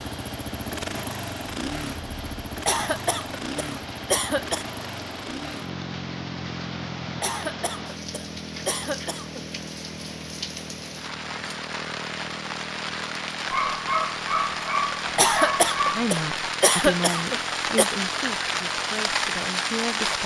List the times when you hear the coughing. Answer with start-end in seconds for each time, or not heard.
2.6-4.7, 7.2-9.4, 15.2-17.9.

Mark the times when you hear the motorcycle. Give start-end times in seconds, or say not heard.
0.0-20.2.